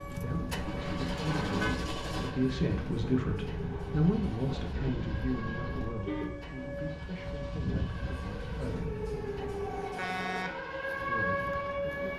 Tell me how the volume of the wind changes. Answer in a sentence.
The volume of the wind goes down.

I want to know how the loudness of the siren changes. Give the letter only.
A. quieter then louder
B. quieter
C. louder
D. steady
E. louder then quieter
C.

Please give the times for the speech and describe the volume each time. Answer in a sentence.
You can hear the speech from 0.1 to 8.9 s, getting louder then quieter; and briefly from 11.1 to 12.1 s.